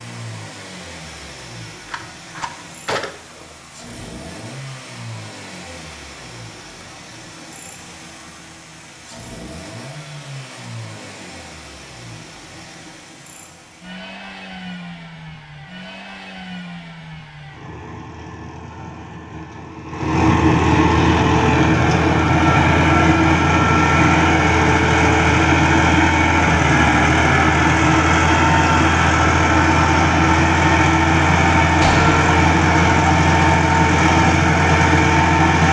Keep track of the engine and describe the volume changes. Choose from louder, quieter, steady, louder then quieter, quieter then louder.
louder.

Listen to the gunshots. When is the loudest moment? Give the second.
32 s.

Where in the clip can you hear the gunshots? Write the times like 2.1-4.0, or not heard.
1.9-3.5, 31.8-32.2.